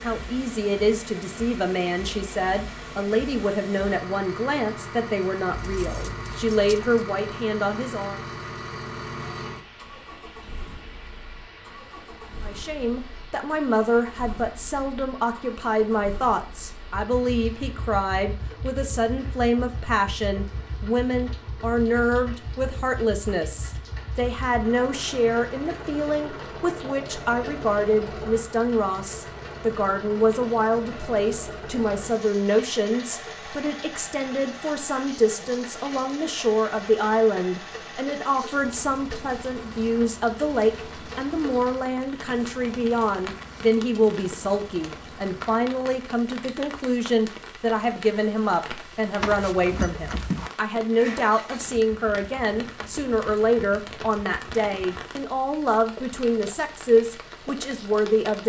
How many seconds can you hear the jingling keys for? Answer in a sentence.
You can hear the jingling keys for 3 seconds altogether.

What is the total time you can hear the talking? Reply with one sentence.
You can hear the talking for 54 seconds altogether.